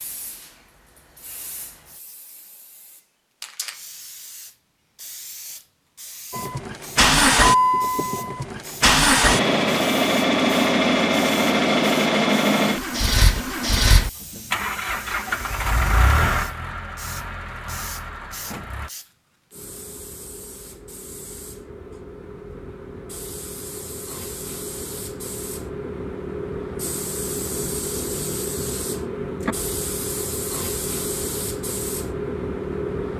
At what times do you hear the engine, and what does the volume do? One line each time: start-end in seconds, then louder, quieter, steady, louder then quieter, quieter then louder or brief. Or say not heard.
6.3-18.9 quieter.